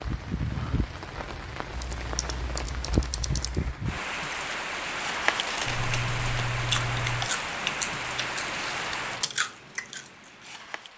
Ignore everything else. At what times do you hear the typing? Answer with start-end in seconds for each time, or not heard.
1.7-3.8, 5.7-7.3.